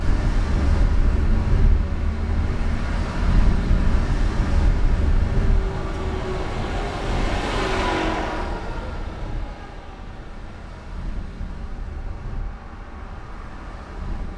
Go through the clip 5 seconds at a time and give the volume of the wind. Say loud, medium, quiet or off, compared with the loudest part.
loud, medium, quiet.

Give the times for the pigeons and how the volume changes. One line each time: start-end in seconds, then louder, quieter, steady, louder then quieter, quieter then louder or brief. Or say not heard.
not heard.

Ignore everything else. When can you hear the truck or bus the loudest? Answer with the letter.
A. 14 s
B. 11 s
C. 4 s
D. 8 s
D.